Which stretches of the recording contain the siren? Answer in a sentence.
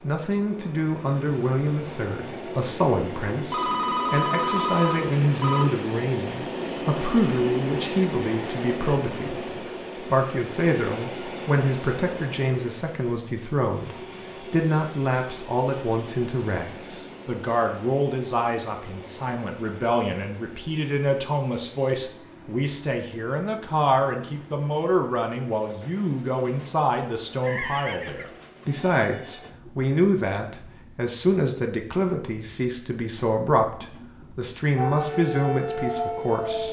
The siren can be heard from 34.8 to 36.6 s.